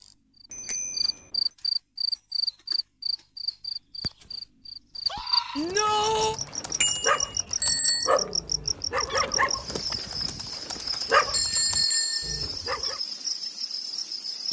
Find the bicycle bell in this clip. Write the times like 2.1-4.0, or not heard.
0.5-1.1, 6.8-8.2, 11.3-12.4.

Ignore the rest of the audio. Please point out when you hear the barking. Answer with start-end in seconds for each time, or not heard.
5.7-13.0.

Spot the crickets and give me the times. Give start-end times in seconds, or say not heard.
0.0-14.4.